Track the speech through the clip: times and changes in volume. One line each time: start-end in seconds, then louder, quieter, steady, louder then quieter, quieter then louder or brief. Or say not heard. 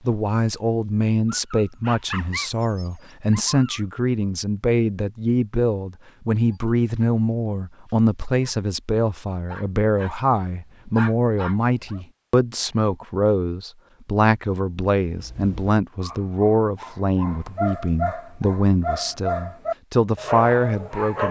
0.1-21.2 steady.